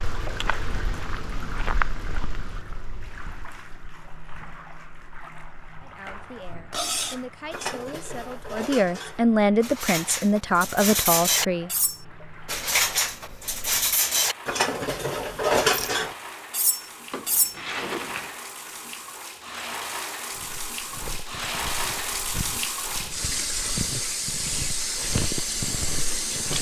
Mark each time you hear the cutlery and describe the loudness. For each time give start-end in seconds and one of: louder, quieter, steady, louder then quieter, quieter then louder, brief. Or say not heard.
6.7-17.6 louder.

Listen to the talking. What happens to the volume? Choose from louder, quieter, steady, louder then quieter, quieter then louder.
louder.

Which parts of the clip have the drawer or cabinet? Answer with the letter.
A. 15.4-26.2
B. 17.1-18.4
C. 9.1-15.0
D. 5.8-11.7
B.